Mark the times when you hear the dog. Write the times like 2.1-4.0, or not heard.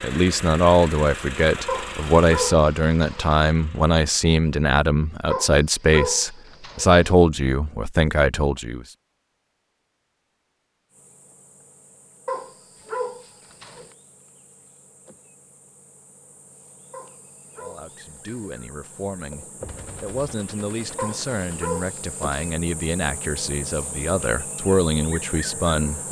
1.6-3.4, 5.3-7.0, 12.2-13.9, 16.9-18.6, 20.9-22.6.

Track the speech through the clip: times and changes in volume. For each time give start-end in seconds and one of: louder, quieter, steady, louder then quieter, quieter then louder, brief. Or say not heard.
0.0-8.8 steady
17.6-26.0 louder.